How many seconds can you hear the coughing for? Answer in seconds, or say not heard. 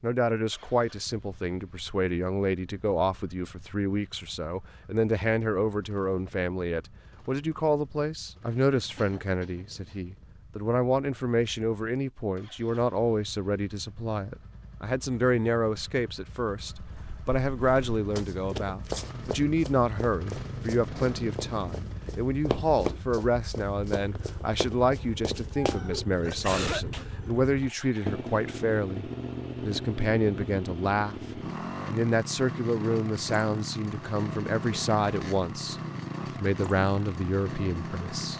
2 s.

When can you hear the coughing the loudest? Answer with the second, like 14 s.
27 s.